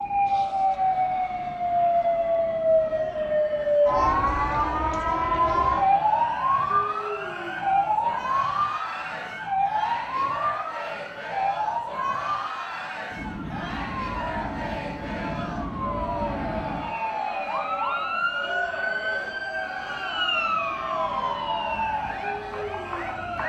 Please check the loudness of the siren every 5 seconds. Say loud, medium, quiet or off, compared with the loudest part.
loud, loud, medium, medium, medium.